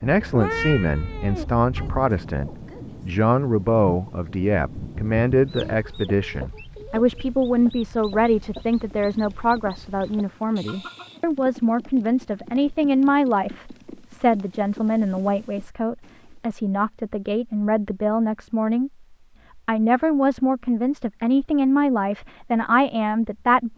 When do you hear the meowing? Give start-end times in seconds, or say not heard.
0.0-2.0.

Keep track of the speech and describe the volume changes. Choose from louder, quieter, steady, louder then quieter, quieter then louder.
steady.